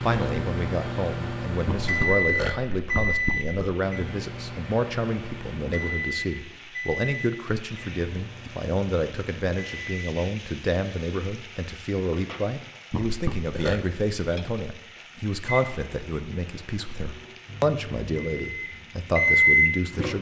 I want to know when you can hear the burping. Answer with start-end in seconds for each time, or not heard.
1.6-3.8, 12.9-13.8.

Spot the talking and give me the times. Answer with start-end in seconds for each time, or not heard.
0.0-20.1.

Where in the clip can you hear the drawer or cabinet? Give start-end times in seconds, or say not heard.
not heard.